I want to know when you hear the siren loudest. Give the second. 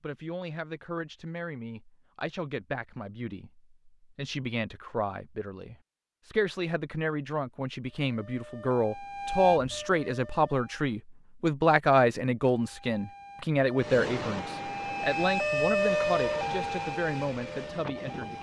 16 s.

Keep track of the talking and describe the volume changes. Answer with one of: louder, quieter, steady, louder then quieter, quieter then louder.
louder then quieter.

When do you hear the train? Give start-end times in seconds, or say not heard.
13.8-18.3.